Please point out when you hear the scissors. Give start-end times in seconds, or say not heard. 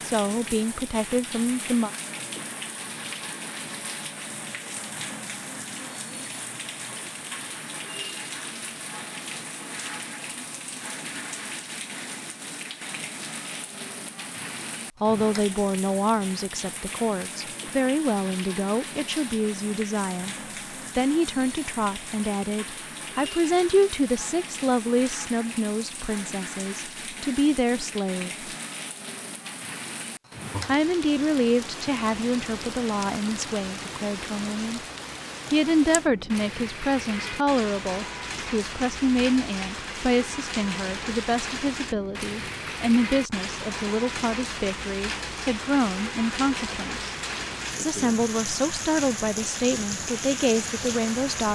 not heard.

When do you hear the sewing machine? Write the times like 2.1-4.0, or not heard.
not heard.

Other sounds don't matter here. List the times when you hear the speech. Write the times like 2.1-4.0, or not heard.
0.0-1.9, 15.0-20.4, 20.9-28.4, 30.6-34.8, 35.5-47.1, 47.8-51.4.